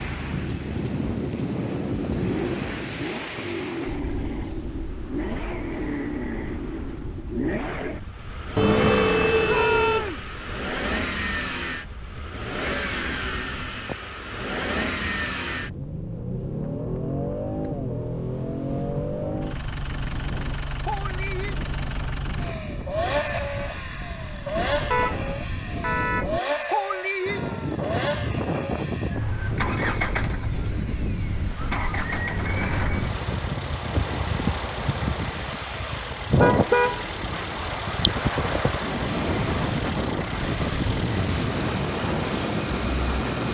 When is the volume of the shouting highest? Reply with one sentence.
The loudest moment of the shouting is at 10 seconds.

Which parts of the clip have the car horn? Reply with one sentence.
The car horn can be heard from 8.6 to 10.1 s, from 24.9 to 26.3 s and from 36.4 to 37.7 s.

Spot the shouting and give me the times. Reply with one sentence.
You can hear the shouting from 9.4 to 10.2 s and from 27.1 to 27.9 s.